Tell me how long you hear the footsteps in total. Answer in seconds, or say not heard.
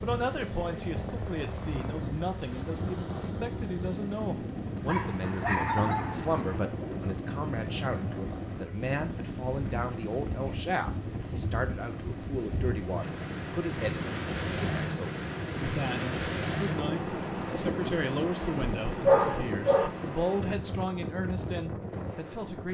not heard.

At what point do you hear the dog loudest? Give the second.
19 s.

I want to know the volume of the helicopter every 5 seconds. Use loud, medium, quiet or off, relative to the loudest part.
loud, loud, loud, off, off.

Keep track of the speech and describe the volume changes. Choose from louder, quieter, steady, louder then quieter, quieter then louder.
steady.